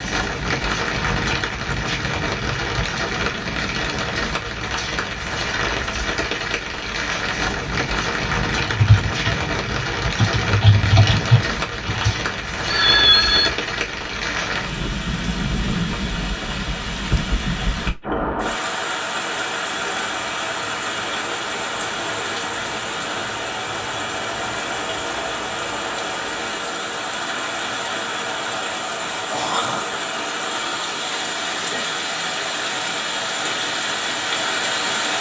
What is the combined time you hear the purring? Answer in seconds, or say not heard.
not heard.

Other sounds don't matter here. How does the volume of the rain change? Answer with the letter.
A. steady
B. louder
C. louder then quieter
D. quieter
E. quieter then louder
A.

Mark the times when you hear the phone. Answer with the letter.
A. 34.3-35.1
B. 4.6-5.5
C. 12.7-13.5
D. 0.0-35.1
C.